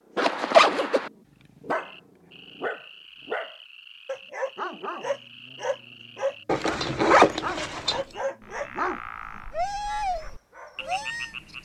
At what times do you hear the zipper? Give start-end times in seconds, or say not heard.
0.1-1.1, 6.5-8.0.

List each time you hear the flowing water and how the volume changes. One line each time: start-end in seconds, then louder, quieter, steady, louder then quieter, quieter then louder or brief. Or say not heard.
not heard.